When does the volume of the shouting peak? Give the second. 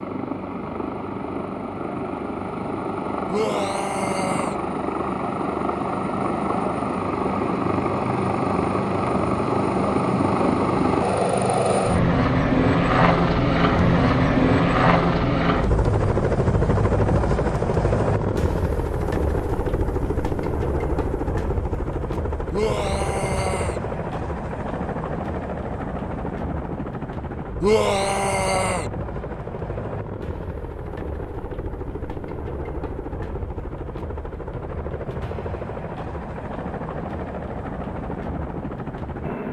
28 s.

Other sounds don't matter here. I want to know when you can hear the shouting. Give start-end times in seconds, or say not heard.
3.2-4.5, 22.5-23.8, 27.6-28.9.